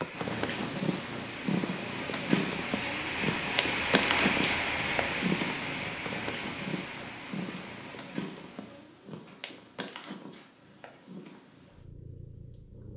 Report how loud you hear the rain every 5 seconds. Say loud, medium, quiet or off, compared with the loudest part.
loud, medium, off.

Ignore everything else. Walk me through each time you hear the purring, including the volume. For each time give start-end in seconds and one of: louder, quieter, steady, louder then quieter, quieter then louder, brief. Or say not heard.
0.0-12.9 quieter.